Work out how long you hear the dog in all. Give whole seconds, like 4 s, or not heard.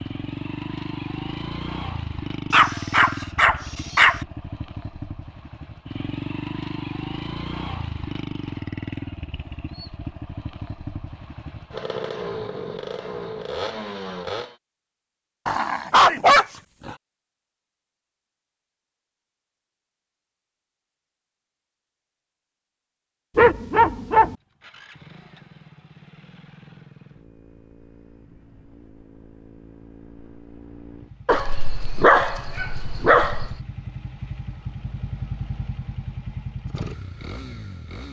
6 s.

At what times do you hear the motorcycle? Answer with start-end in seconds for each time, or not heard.
0.0-14.6, 24.2-38.0.